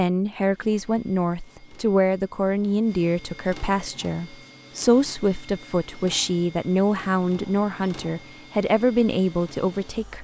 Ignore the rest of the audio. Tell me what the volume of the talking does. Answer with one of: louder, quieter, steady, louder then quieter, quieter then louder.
steady.